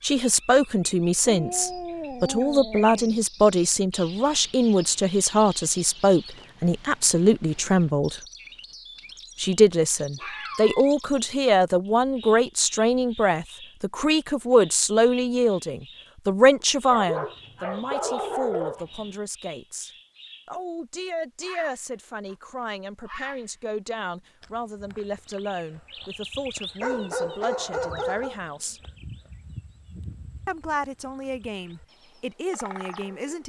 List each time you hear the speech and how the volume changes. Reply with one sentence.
You can hear the speech from 0.0 to 8.2 s, at a steady volume; from 9.4 to 28.8 s, getting quieter; and briefly from 30.4 to 33.4 s.